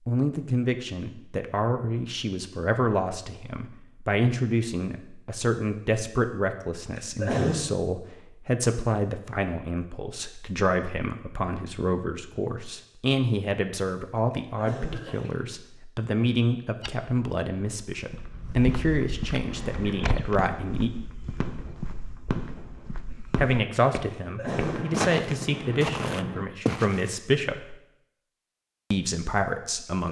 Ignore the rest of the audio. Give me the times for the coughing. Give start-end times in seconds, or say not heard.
7.0-7.5, 14.3-15.3, 24.1-24.9.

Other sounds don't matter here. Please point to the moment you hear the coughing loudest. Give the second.
7 s.